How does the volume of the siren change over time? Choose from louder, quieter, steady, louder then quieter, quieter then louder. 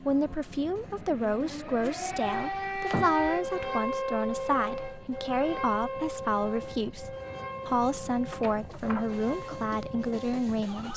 louder then quieter.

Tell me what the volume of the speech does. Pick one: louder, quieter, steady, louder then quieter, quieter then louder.
steady.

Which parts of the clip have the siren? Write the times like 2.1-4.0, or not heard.
0.0-10.9.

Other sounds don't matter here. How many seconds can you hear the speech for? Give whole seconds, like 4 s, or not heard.
11 s.